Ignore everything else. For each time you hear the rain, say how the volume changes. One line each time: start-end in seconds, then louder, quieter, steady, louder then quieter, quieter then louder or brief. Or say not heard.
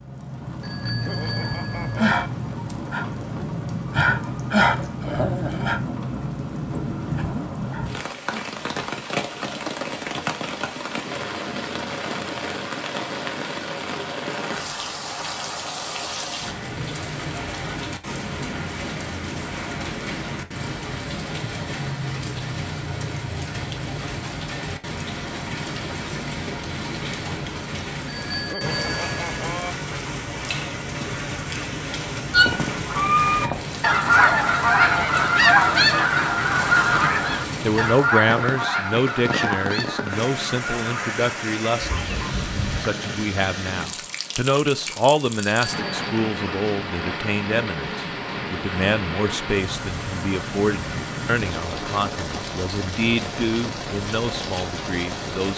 0.0-55.5 steady.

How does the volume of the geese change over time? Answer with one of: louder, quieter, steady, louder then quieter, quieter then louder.
quieter.